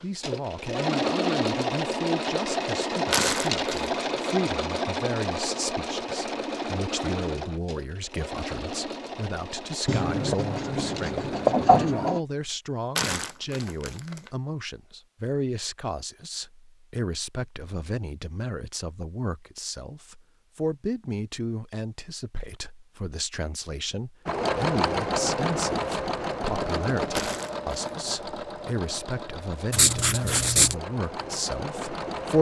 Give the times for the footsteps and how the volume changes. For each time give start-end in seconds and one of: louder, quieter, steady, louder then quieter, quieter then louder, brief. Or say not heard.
not heard.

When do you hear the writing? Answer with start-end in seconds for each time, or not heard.
9.8-12.2, 29.7-30.8.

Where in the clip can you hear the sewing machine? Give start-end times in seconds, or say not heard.
0.0-11.8, 24.2-32.3.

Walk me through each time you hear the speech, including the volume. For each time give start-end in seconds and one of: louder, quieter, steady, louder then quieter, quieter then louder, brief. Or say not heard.
0.0-32.3 steady.